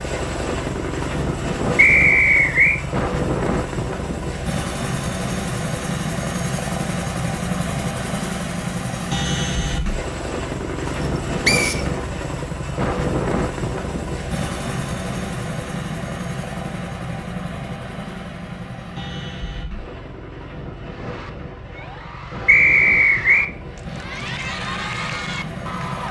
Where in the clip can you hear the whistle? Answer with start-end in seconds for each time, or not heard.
1.8-2.8, 11.4-11.8, 22.4-23.5.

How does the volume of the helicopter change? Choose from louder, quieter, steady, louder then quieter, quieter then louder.
quieter.